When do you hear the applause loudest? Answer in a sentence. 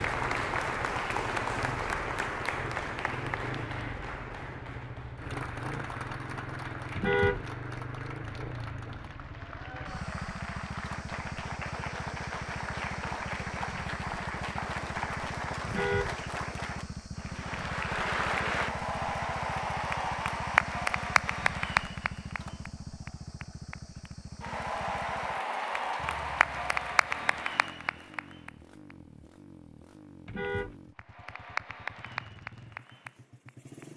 The volume of the applause peaks at 21 seconds.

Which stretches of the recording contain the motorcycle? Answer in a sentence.
You can hear the motorcycle from 0.0 to 33.9 s.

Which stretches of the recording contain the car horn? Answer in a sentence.
You can hear the car horn from 7.0 to 7.5 s, from 15.7 to 16.1 s and from 30.2 to 30.8 s.